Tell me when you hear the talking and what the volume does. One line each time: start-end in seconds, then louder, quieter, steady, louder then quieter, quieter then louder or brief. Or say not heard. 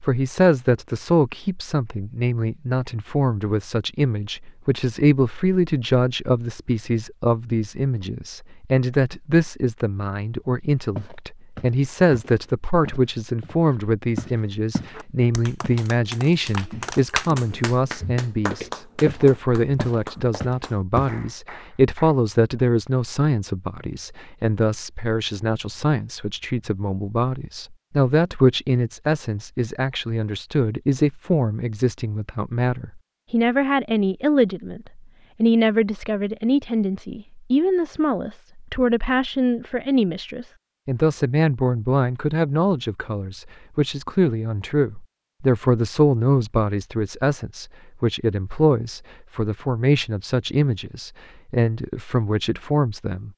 0.0-53.3 steady.